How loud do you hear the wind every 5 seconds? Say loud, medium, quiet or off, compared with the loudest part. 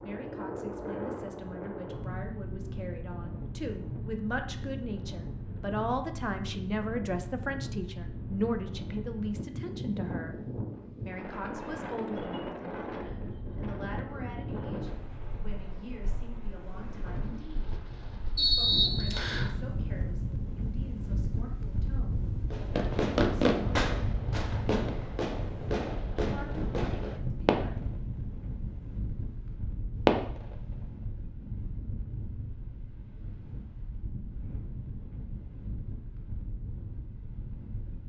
loud, loud, loud, loud, loud, loud, medium, medium.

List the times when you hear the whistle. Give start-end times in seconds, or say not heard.
18.4-19.5.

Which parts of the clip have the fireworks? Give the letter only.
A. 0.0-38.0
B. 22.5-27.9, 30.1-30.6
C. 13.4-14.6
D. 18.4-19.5
B.